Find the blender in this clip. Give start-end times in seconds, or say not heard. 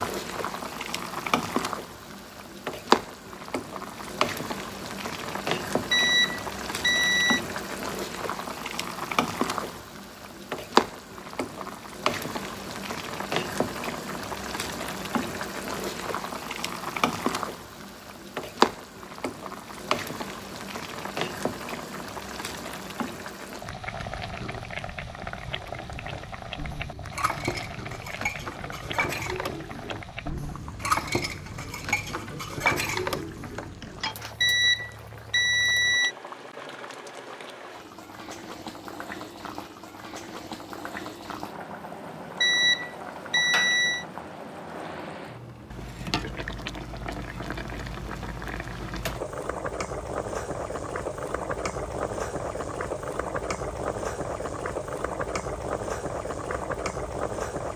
not heard.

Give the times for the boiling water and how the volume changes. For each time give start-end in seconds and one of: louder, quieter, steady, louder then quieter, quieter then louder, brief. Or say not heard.
0.0-57.7 quieter then louder.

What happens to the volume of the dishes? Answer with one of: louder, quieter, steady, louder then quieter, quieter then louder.
louder.